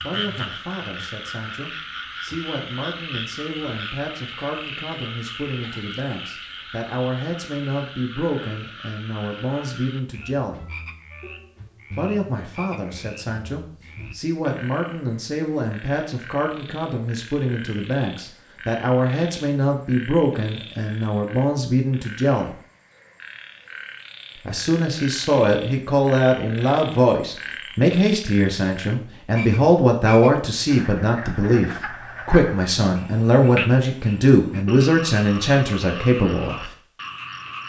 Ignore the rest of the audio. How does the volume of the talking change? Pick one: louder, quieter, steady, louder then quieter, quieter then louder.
louder.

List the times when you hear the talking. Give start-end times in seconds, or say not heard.
0.0-10.7, 11.9-22.6, 24.4-36.7.